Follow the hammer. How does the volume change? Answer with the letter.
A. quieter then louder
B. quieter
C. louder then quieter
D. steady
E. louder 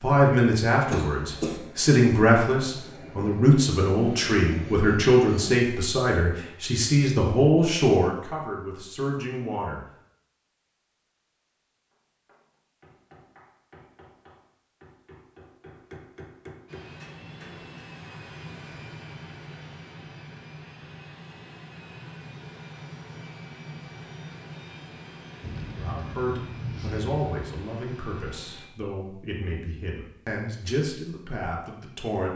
E.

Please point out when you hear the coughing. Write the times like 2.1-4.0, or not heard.
0.9-1.6.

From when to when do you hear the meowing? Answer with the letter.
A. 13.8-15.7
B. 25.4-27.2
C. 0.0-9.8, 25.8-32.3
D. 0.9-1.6
B.